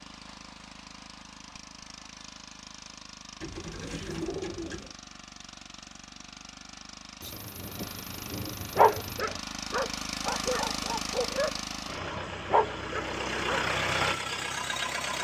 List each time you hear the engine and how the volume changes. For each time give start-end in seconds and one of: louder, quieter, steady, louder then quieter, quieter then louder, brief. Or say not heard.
0.0-15.2 louder.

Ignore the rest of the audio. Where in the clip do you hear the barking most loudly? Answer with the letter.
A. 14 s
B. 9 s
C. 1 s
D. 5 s
B.